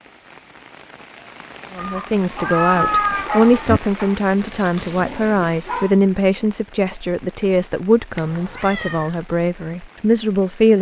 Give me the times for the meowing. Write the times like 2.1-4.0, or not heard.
1.8-3.8, 8.2-9.2.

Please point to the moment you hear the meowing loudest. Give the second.
3 s.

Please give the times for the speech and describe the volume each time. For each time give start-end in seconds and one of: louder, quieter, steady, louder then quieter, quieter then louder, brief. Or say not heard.
1.8-10.7 steady.